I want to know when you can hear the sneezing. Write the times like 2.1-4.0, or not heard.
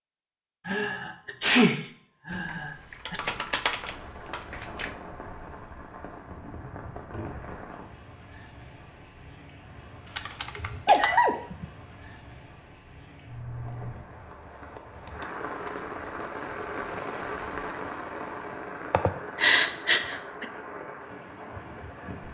0.7-3.2, 10.8-11.3, 18.9-20.4.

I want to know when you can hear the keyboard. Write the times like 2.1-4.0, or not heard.
2.3-5.0, 10.1-11.7, 15.1-15.9.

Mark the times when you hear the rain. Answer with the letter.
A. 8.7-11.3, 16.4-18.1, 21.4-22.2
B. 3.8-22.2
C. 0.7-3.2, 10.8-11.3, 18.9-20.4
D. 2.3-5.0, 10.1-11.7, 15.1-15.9
B.